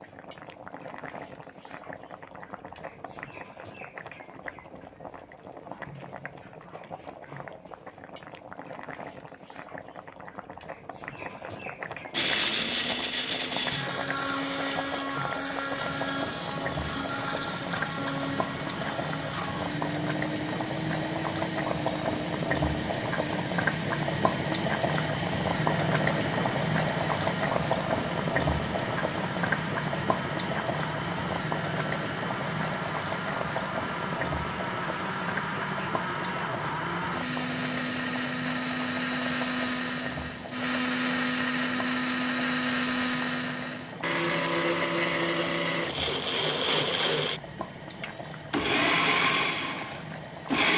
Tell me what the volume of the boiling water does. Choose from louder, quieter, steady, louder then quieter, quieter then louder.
louder then quieter.